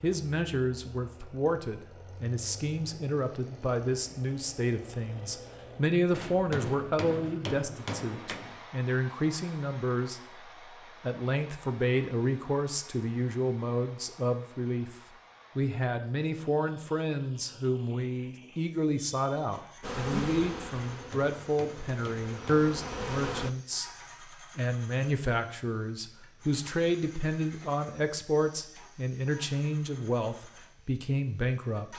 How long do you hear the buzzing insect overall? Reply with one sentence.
The buzzing insect can be heard for 4 seconds in total.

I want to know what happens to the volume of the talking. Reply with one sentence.
The volume of the talking stays about the same.